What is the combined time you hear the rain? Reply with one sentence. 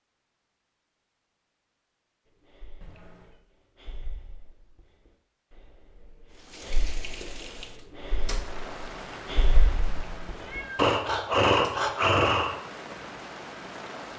The rain can be heard for 8 seconds in total.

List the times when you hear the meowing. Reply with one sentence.
The meowing can be heard from 2.8 to 3.4 s and from 9.8 to 10.8 s.